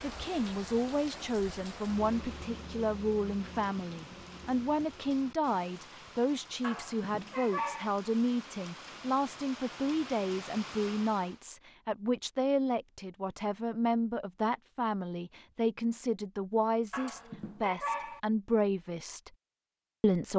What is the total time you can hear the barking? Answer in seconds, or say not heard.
3 s.